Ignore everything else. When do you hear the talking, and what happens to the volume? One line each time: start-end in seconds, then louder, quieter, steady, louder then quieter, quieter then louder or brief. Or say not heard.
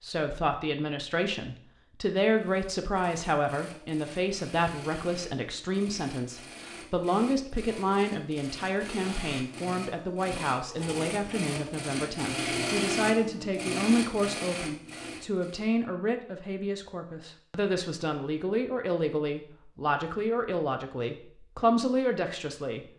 0.0-22.9 steady.